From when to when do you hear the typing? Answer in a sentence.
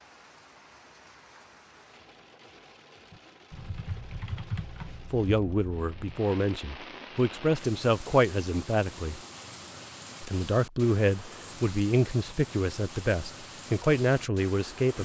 The typing can be heard from 3.1 to 6.2 s.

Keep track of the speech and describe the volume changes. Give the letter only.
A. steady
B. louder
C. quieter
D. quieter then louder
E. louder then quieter
A.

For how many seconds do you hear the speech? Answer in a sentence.
You can hear the speech for 9 seconds altogether.